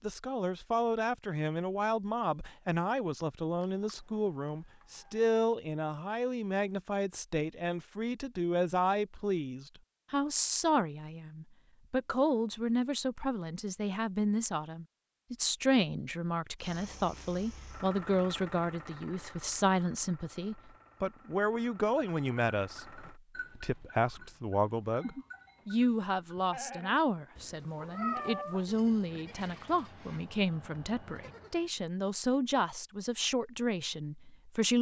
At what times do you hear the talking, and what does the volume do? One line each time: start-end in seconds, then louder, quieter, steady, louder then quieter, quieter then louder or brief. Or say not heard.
0.0-34.7 steady.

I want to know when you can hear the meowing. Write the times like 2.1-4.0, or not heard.
3.6-5.3, 27.4-28.6.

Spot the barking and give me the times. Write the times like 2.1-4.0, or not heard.
not heard.